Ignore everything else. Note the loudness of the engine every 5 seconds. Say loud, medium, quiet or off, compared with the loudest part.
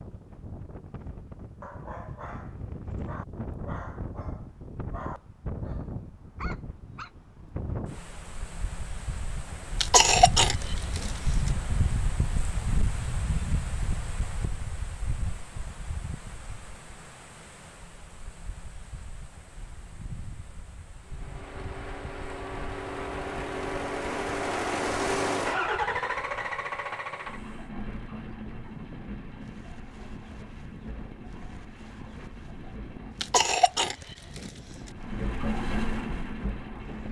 off, off, off, off, loud, loud, quiet, loud.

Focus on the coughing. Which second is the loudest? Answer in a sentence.
The loudest moment of the coughing is at 10 seconds.